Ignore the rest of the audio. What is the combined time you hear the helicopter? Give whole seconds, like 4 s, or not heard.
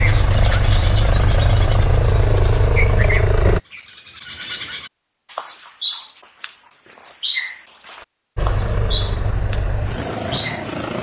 6 s.